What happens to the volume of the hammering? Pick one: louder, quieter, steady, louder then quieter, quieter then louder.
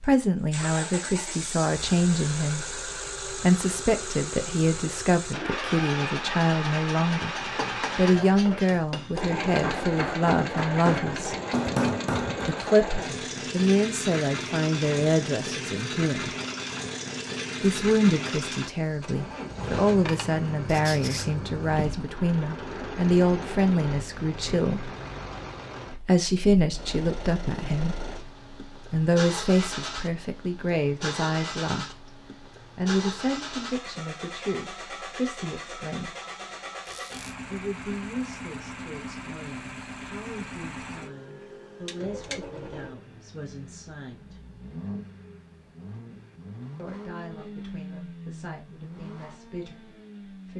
louder.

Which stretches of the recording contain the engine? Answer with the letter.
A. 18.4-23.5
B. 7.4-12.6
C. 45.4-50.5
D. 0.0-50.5
D.